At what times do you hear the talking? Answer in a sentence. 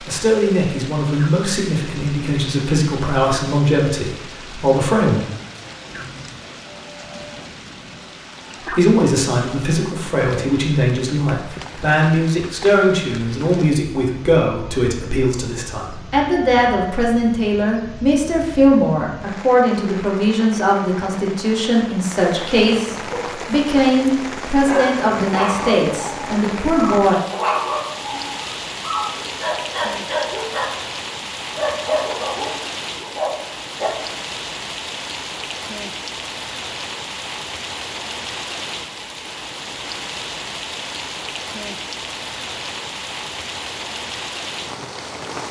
You can hear the talking from 0.1 to 5.2 s and from 8.7 to 27.1 s.